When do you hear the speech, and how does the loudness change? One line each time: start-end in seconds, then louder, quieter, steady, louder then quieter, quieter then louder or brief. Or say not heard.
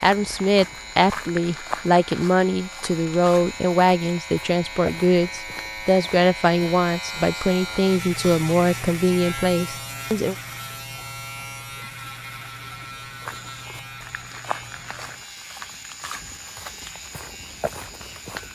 0.0-10.3 steady.